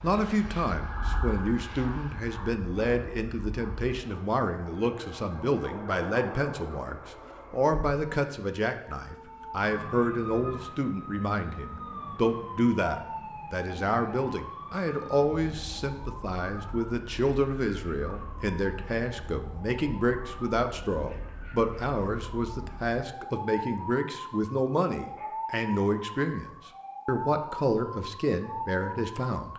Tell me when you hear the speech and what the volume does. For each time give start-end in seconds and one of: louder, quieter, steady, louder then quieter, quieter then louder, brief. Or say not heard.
0.0-29.5 steady.